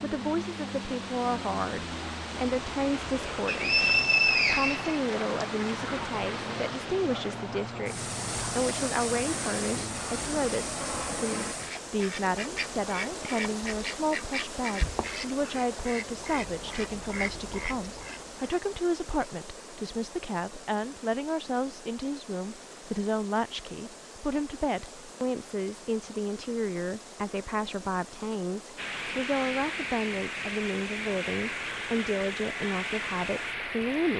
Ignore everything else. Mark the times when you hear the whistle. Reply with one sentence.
You can hear the whistle from 3.5 to 5.5 s.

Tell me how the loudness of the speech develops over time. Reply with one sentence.
The loudness of the speech stays about the same.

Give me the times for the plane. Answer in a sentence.
You can hear the plane from 0.0 to 11.6 s and from 28.8 to 34.1 s.